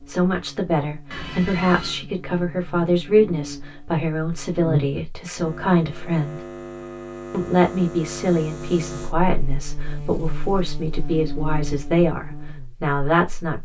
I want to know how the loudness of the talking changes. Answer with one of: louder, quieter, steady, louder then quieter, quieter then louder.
steady.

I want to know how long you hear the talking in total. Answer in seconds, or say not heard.
13 s.